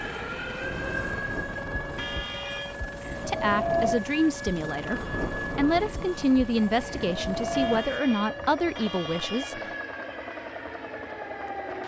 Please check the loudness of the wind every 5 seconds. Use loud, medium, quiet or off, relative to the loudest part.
loud, loud, off.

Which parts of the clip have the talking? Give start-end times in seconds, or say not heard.
3.2-9.6.